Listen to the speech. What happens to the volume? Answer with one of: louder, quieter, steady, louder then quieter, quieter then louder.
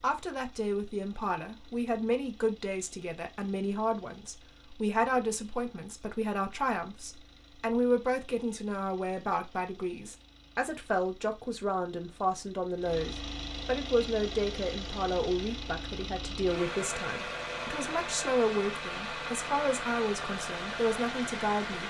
steady.